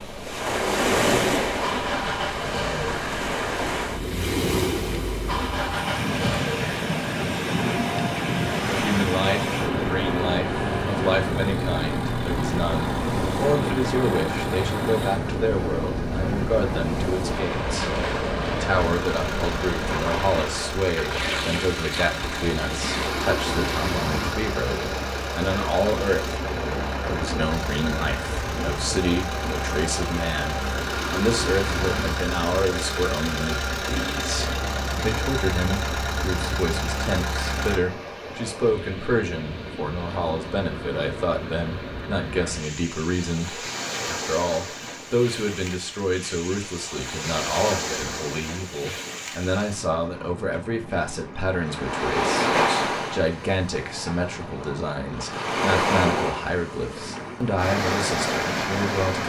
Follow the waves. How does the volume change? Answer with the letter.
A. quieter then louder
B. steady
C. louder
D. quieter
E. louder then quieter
A.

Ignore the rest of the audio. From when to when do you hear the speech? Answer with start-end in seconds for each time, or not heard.
8.7-59.2.